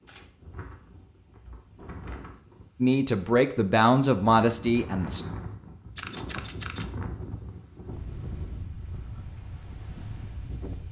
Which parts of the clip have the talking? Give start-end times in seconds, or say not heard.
2.8-5.2.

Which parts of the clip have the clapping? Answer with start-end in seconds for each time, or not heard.
not heard.